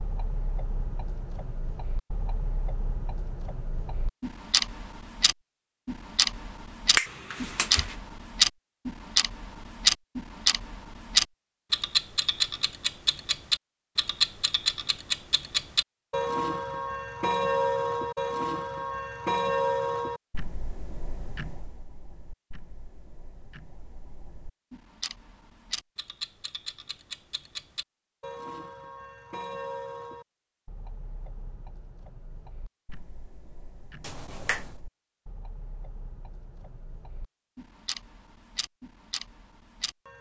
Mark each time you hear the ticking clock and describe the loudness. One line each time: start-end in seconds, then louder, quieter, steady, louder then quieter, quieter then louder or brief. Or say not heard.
0.0-40.1 louder then quieter.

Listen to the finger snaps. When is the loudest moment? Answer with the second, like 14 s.
7 s.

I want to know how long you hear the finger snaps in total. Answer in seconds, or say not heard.
2 s.